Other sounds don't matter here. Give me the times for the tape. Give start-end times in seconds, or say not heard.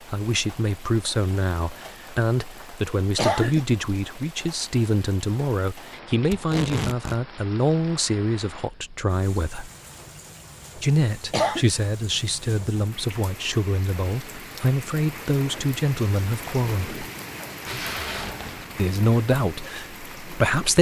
6.3-7.2, 17.6-18.7.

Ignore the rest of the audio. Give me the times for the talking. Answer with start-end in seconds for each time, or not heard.
0.1-9.7, 10.8-17.0, 18.8-20.7.